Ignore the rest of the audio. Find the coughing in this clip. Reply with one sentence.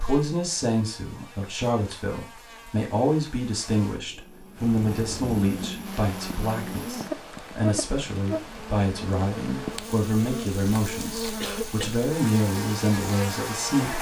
You can hear the coughing from 11.4 to 11.9 s.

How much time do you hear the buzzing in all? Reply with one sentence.
You can hear the buzzing for 14 seconds altogether.